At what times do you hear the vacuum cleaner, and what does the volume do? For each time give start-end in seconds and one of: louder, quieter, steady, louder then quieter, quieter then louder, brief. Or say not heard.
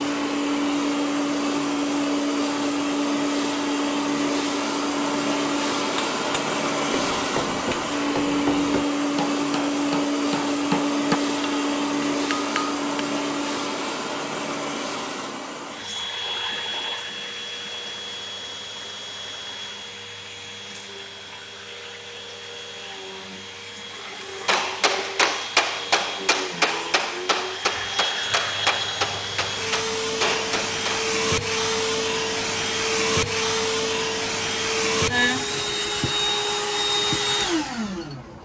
0.0-38.4 quieter then louder.